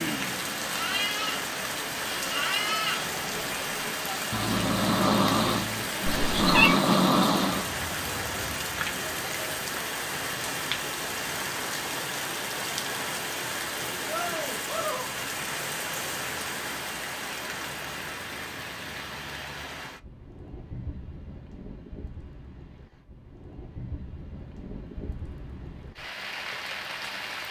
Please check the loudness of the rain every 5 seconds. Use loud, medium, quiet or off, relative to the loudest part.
loud, loud, loud, loud, quiet, medium.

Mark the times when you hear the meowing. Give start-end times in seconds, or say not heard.
6.0-6.8.